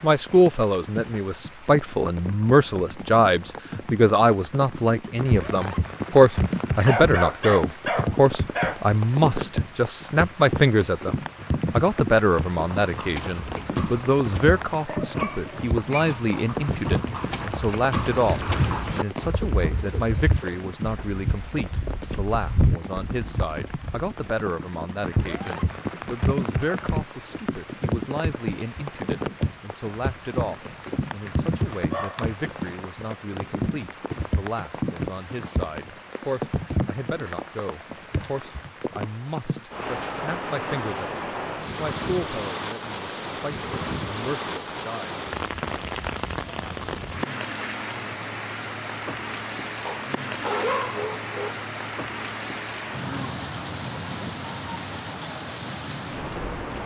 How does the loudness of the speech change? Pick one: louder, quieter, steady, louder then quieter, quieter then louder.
quieter.